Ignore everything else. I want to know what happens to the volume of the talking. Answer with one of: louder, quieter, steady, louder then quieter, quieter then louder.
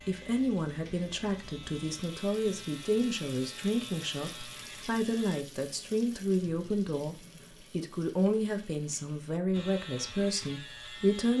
steady.